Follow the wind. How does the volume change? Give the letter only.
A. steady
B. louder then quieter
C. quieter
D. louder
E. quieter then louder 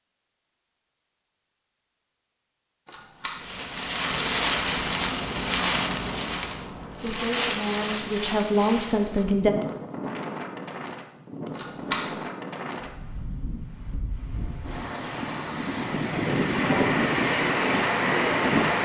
E.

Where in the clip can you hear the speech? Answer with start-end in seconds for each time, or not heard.
6.8-9.6.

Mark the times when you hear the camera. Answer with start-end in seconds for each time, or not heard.
2.9-3.4, 11.6-12.1.